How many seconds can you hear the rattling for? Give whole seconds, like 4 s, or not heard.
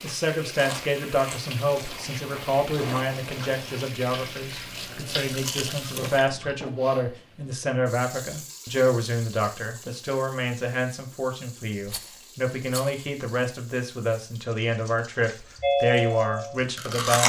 2 s.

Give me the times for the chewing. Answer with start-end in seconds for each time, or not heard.
0.6-6.5, 15.6-17.2.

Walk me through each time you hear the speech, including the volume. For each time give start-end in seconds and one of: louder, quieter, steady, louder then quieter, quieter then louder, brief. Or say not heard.
0.0-17.2 steady.